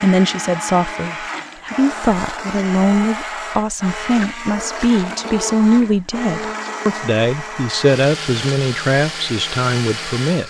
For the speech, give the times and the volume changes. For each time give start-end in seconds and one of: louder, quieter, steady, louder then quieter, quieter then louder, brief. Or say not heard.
0.0-10.4 steady.